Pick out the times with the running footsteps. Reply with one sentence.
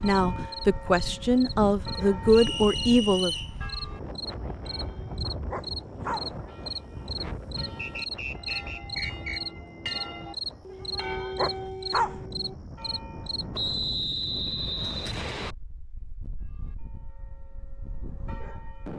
You can't hear the running footsteps here.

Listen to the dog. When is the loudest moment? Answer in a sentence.
The volume of the dog peaks at 12 seconds.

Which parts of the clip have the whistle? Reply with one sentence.
You can hear the whistle from 2.3 to 3.5 s, from 7.8 to 9.4 s and from 13.5 to 15.6 s.